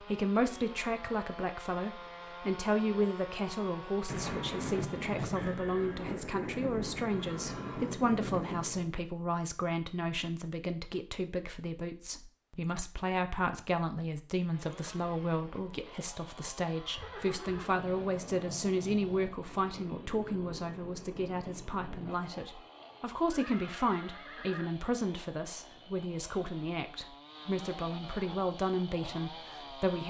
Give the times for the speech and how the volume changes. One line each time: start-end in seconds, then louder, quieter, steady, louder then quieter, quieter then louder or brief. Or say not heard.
0.0-30.0 steady.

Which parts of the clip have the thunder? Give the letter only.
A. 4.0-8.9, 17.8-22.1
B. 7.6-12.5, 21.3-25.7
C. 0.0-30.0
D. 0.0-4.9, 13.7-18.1
A.